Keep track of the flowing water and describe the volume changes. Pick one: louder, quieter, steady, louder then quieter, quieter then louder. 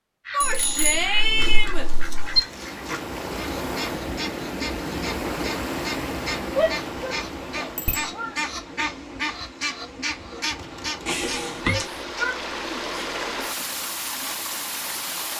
quieter then louder.